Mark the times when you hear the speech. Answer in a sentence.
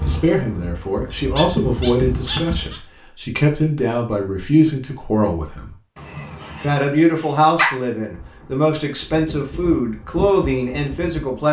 The speech can be heard from 0.0 to 5.8 s and from 6.6 to 11.4 s.